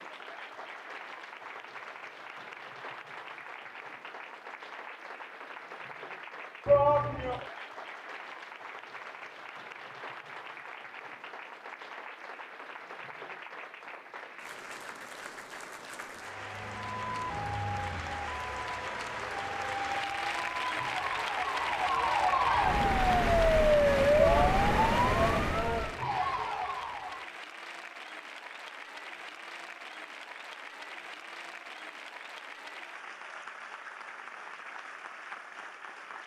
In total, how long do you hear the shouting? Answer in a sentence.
The shouting can be heard for 3 seconds in total.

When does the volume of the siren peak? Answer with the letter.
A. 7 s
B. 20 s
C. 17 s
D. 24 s
D.